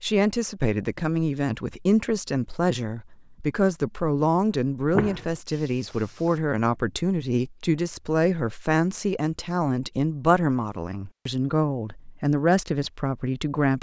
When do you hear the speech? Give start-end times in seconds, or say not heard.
0.0-13.7.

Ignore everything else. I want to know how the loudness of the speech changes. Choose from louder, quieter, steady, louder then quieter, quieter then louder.
steady.